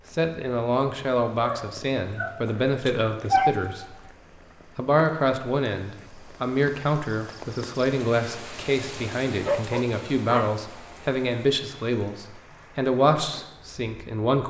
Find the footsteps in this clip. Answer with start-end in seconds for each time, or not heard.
not heard.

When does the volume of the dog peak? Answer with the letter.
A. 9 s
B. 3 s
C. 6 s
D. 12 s
B.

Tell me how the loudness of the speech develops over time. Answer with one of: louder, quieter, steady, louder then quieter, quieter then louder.
steady.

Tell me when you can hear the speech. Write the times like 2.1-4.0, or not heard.
0.1-4.0, 4.8-14.4.